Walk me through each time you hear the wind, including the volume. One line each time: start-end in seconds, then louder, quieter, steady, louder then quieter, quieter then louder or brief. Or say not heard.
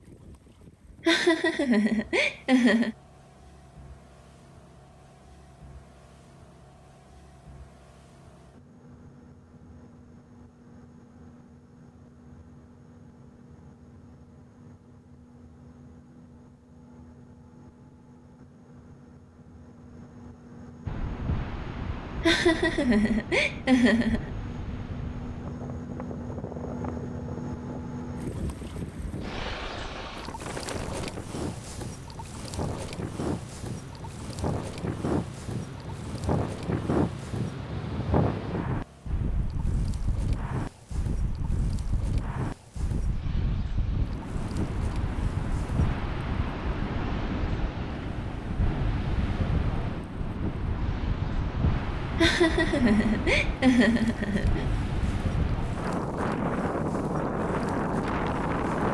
20.9-58.8 louder.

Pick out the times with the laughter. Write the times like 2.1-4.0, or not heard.
1.1-3.0, 22.2-24.3, 52.1-54.6.